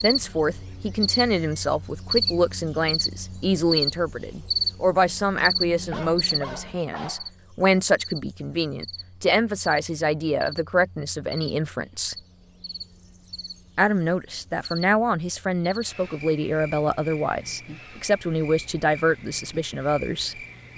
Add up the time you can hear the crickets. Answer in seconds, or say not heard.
21 s.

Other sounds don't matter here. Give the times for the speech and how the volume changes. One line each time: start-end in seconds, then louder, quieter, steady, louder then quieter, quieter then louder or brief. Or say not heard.
0.0-12.2 steady
13.8-20.4 steady.